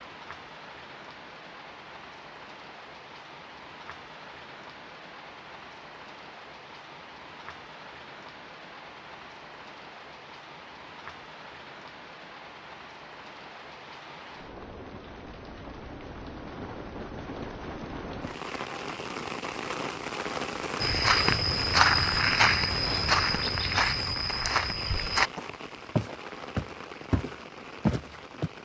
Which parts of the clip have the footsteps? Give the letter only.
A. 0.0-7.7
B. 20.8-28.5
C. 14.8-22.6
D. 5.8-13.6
B.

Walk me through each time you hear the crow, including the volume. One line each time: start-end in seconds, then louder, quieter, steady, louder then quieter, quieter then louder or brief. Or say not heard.
not heard.